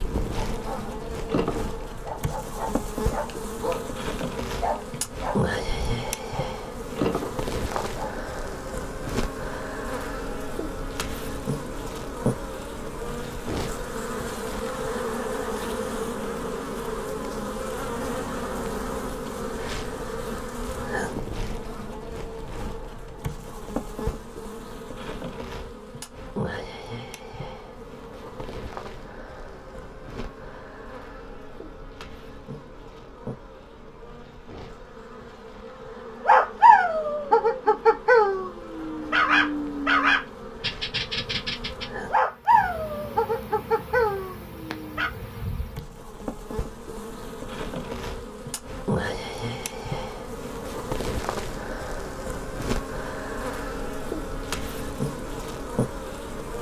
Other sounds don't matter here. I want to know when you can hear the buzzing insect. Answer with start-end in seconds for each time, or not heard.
0.0-56.5.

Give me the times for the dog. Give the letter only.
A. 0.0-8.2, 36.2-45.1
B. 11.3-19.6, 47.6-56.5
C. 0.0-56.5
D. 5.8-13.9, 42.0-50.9
A.